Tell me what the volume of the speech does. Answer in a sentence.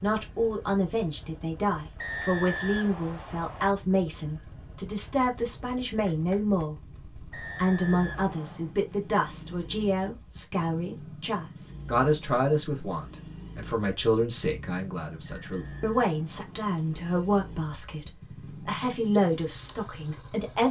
The volume of the speech stays about the same.